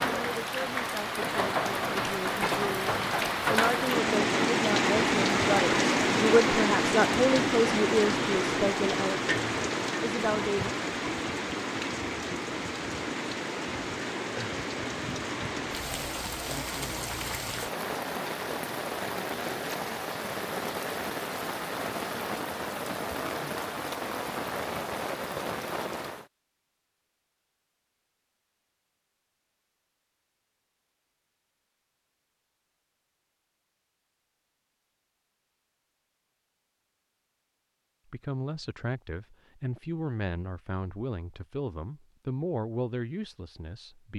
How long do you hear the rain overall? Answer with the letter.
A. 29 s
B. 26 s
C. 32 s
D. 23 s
B.